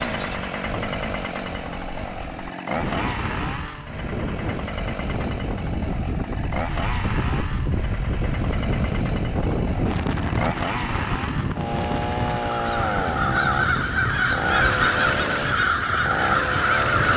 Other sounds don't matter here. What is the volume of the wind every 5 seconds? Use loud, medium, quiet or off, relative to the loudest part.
medium, loud, loud, medium.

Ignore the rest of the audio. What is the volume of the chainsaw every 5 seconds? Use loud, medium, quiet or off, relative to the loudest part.
loud, medium, loud, loud.